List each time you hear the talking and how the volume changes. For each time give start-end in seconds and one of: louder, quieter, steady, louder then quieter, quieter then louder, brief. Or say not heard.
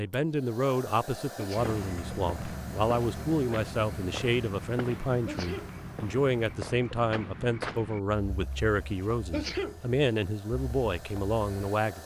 0.0-12.0 steady.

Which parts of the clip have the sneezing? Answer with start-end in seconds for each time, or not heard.
1.4-1.8, 5.2-5.8, 9.3-9.8.